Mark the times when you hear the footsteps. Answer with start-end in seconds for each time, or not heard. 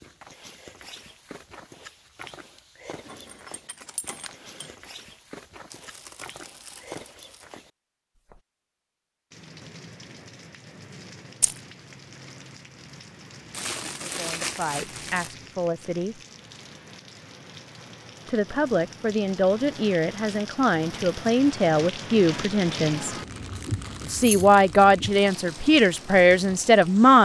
0.0-8.4.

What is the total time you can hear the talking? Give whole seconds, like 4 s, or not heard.
10 s.